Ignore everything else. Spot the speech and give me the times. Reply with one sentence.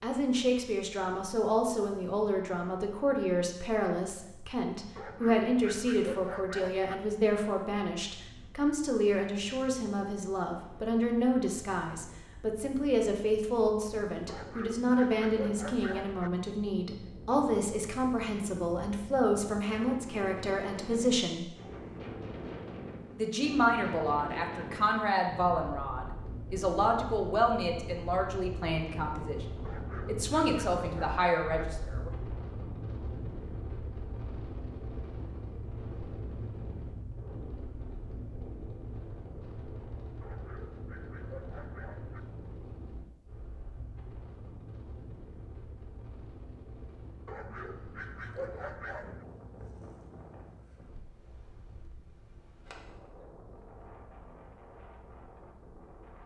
You can hear the speech from 0.0 to 21.4 s, from 23.1 to 29.4 s and from 30.1 to 32.1 s.